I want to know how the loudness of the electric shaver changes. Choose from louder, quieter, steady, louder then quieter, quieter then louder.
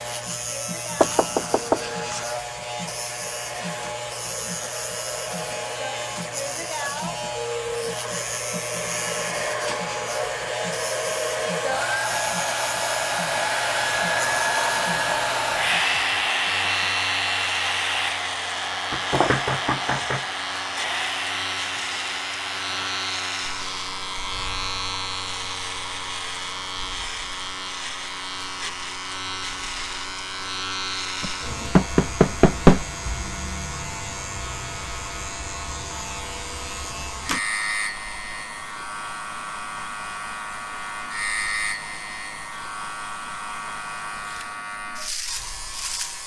steady.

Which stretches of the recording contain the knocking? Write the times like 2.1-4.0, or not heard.
1.0-2.2, 18.9-20.2, 31.2-32.9.